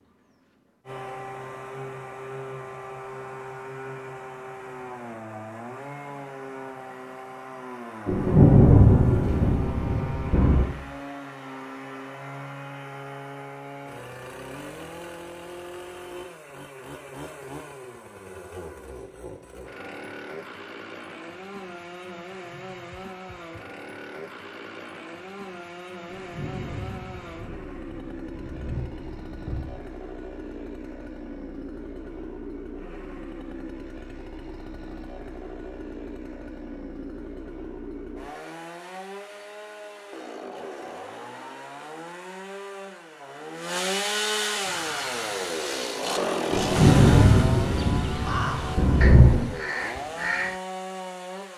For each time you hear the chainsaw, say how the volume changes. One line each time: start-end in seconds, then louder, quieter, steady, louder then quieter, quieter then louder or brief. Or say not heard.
0.0-51.5 louder.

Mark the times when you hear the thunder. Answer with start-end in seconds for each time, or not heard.
8.1-10.7, 26.1-29.9, 46.5-49.5.